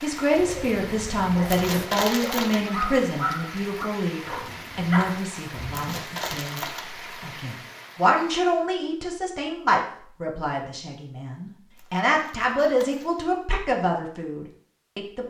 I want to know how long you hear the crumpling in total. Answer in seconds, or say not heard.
4 s.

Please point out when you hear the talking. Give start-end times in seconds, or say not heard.
0.0-15.2.